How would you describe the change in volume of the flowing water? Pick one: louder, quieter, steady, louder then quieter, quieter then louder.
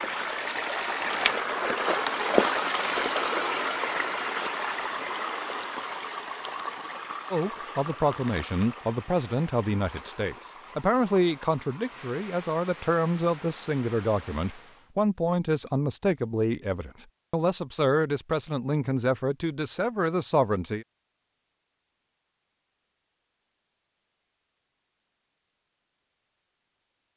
quieter.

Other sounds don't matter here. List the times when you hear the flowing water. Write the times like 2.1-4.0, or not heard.
0.0-14.9.